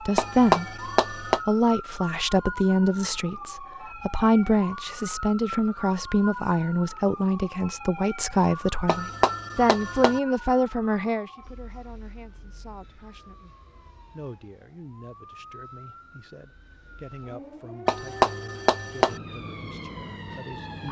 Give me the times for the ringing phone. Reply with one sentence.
The ringing phone can be heard from 0.1 to 1.4 s, from 8.8 to 10.2 s and from 17.9 to 19.2 s.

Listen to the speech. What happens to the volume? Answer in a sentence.
The volume of the speech goes down.